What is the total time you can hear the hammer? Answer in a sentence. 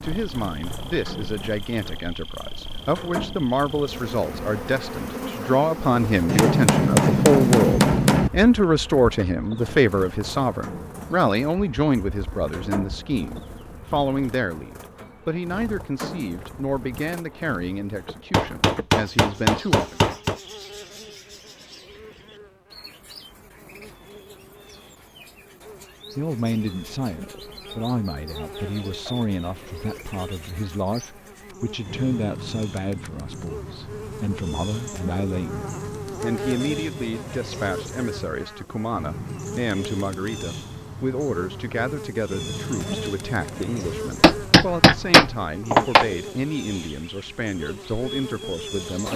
You can hear the hammer for 6 seconds altogether.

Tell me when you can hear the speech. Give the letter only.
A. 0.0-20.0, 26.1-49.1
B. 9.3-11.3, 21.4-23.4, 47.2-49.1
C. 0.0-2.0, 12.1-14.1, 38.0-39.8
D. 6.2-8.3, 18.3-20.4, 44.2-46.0
A.